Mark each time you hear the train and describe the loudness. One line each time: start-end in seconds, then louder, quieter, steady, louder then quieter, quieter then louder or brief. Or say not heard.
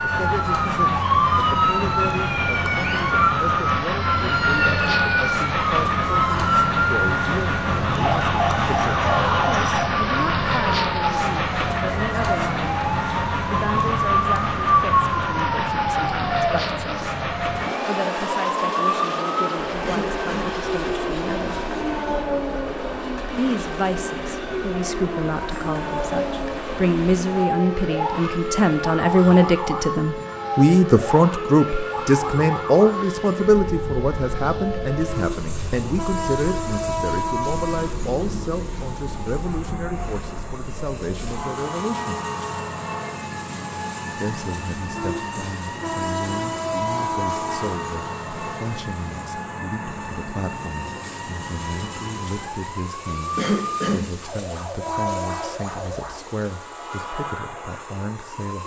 0.0-58.6 quieter.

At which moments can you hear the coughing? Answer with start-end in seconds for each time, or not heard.
19.8-20.6, 53.4-54.1.